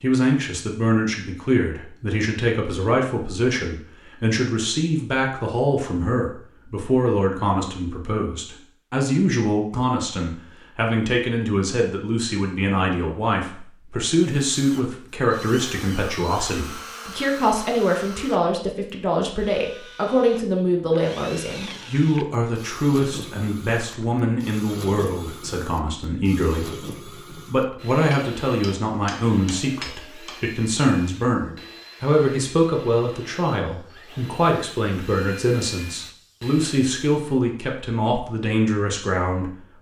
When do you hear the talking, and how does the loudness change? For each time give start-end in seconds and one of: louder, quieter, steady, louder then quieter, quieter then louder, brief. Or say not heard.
0.0-39.6 steady.